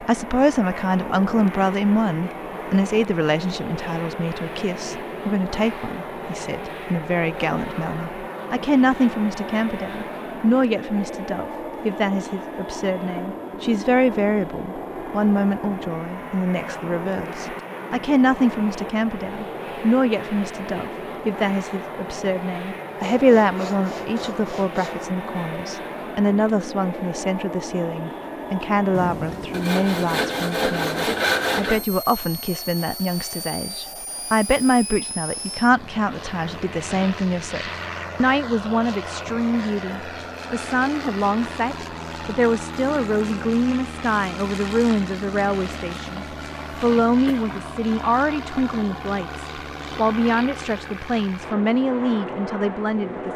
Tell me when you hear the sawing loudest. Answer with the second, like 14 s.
31 s.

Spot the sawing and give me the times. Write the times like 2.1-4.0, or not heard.
23.0-25.1, 28.9-31.8.